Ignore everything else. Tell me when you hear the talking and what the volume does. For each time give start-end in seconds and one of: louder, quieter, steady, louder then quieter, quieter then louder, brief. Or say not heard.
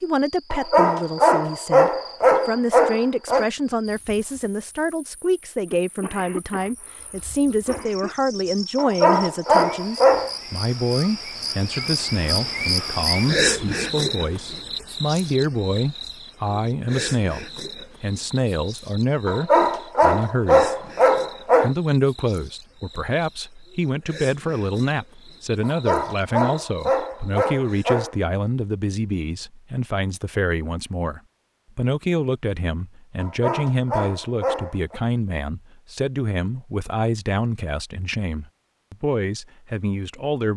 0.0-20.7 steady
21.6-40.5 steady.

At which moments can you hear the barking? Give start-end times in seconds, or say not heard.
0.5-3.5, 8.8-10.3, 19.2-21.8, 25.6-28.1, 33.2-35.0.